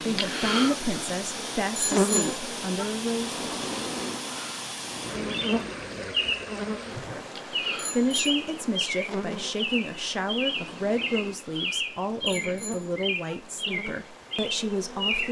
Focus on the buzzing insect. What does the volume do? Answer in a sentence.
The volume of the buzzing insect goes down.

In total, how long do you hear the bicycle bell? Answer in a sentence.
The bicycle bell can be heard for 3 seconds in total.